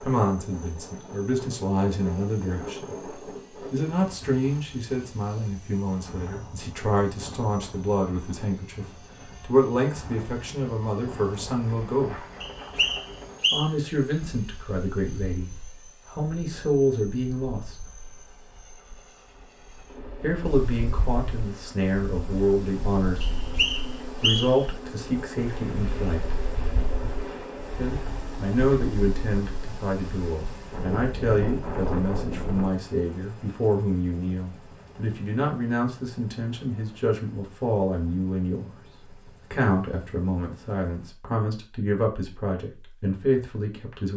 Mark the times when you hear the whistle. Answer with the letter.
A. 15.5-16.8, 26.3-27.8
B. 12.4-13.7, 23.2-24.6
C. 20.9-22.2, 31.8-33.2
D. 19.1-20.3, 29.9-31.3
B.